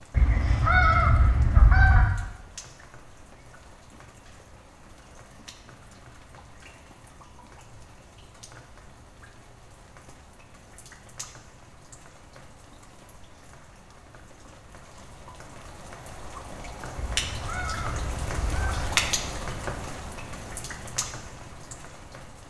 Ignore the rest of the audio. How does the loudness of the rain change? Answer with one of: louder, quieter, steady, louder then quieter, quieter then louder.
louder.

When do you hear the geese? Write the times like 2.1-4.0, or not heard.
0.1-2.0, 16.9-18.9.